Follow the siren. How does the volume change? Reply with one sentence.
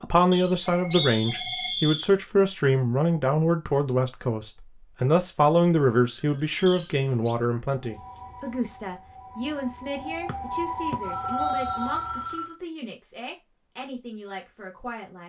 The volume of the siren goes up.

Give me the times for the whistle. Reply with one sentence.
The whistle can be heard from 0.3 to 2.1 s, from 6.7 to 7.3 s and from 10.2 to 11.9 s.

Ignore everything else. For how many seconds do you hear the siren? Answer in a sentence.
The siren can be heard for 5 seconds in total.